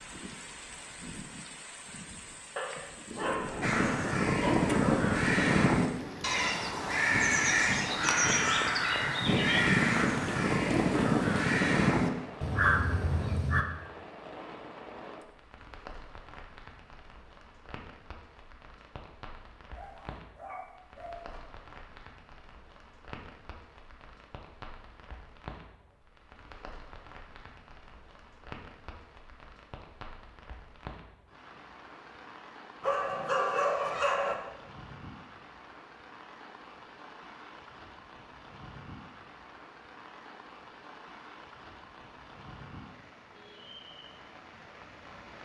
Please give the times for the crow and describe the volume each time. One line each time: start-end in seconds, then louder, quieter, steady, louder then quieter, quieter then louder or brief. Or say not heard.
3.6-13.7 steady.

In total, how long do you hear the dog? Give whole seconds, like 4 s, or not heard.
6 s.